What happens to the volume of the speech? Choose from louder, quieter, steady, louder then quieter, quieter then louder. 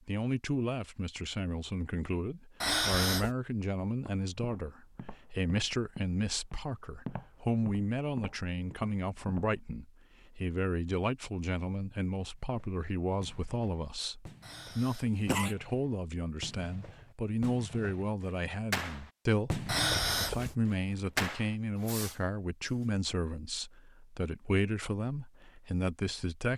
steady.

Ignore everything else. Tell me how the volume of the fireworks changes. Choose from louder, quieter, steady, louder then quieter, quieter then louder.
louder.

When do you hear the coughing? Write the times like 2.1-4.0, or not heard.
2.6-3.3, 14.4-15.6, 19.6-20.6.